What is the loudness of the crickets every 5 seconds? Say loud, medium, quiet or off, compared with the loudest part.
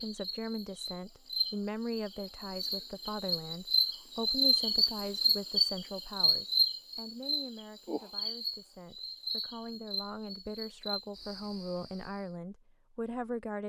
loud, loud, quiet.